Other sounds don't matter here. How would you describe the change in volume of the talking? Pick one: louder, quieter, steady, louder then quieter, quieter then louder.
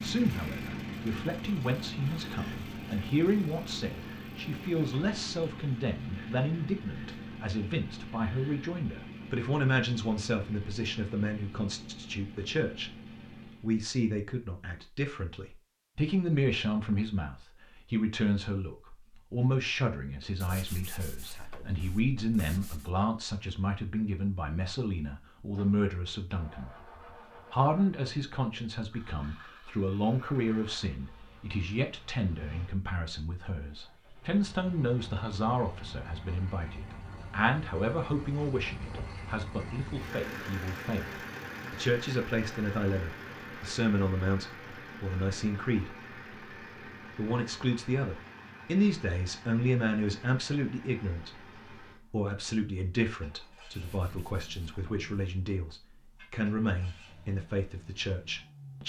steady.